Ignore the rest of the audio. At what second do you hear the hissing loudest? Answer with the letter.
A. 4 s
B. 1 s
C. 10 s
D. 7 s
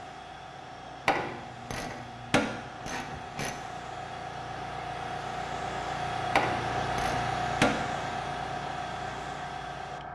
D.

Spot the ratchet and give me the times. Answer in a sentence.
The ratchet can be heard from 1.1 to 3.5 s and from 6.3 to 7.9 s.